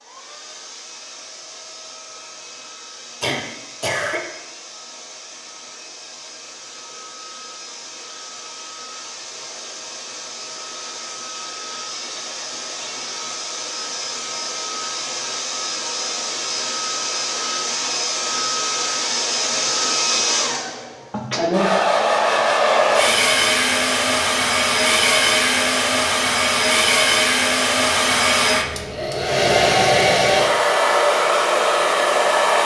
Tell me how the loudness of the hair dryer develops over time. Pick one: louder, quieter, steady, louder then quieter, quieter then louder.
louder.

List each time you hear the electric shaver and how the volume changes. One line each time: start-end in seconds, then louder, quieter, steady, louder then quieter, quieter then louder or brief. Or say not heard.
not heard.